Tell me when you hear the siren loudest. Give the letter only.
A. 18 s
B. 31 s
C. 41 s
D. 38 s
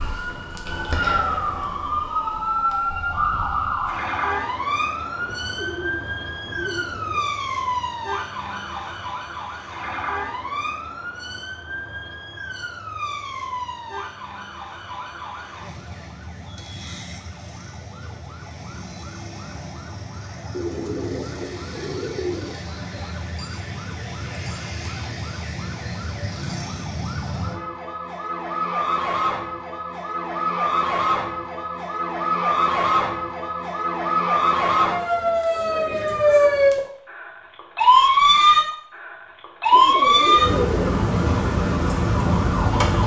D.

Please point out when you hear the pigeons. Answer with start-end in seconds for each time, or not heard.
5.2-7.2, 20.5-22.6, 39.7-41.0.